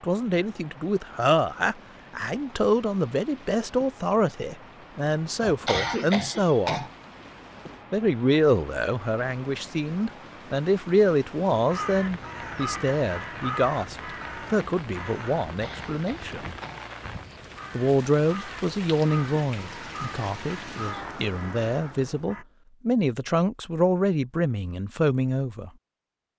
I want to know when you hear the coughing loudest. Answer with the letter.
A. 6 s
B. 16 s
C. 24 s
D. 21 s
A.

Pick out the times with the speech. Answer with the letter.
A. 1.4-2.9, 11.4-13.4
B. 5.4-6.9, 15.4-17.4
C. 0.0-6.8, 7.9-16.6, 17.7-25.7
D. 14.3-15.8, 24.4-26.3
C.